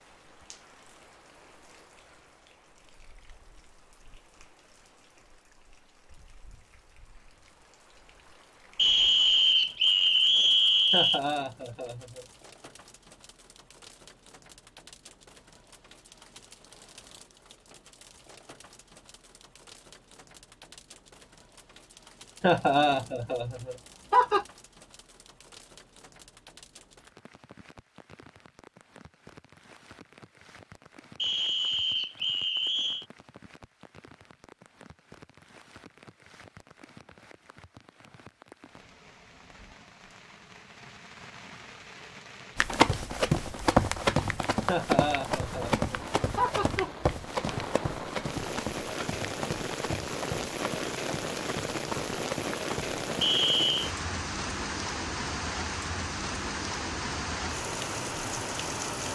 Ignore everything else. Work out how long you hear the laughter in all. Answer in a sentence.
You can hear the laughter for 6 seconds altogether.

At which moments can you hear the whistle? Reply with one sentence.
The whistle can be heard from 8.8 to 11.2 s, from 31.1 to 33.0 s and from 53.2 to 53.9 s.